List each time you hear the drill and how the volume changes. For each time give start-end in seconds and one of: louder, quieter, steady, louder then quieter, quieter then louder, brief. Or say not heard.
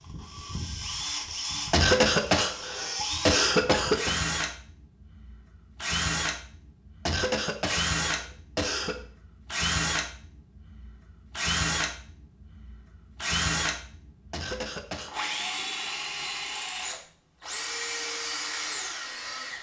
0.0-19.5 steady.